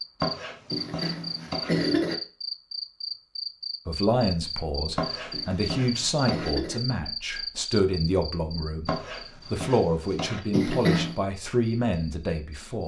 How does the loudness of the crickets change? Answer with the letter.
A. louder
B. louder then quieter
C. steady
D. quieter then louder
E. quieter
E.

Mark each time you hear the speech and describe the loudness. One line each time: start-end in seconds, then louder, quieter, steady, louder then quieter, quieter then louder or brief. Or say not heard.
3.9-12.8 steady.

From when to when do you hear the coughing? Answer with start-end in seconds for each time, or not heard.
0.7-2.1, 5.3-6.8, 10.5-11.2.